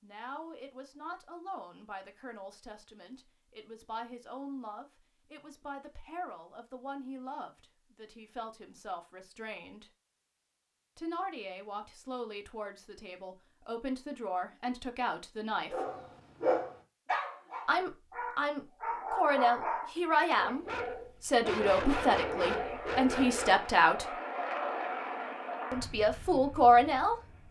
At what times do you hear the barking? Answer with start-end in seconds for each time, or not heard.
15.7-23.7.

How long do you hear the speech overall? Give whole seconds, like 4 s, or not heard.
23 s.